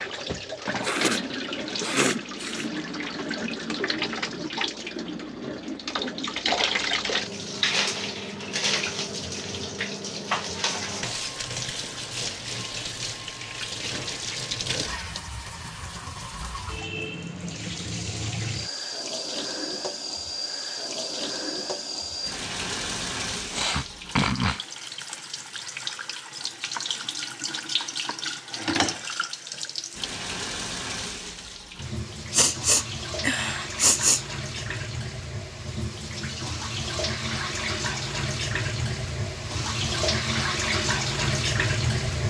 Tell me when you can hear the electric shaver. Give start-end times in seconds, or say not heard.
not heard.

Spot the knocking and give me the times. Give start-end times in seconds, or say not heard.
not heard.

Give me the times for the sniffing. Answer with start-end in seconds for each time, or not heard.
0.8-2.7, 23.5-24.6, 32.3-34.8.